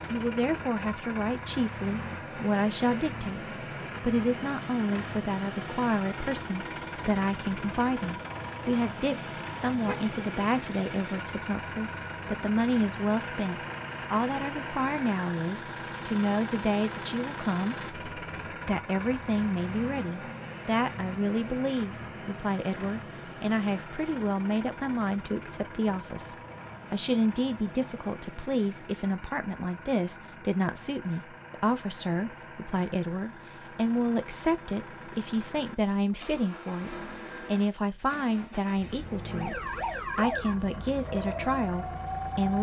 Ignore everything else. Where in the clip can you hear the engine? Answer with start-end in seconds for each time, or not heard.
0.0-42.5.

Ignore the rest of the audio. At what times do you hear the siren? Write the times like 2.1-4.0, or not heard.
39.3-42.4.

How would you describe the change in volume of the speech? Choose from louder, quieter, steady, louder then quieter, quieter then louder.
steady.